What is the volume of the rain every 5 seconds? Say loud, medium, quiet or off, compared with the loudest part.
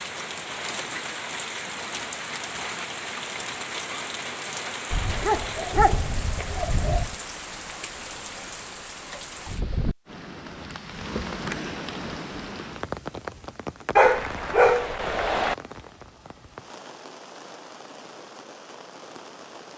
loud, loud, loud, medium.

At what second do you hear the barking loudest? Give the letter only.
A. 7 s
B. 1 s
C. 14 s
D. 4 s
C.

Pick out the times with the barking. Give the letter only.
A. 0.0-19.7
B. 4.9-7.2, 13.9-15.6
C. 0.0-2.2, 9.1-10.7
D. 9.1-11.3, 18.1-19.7
B.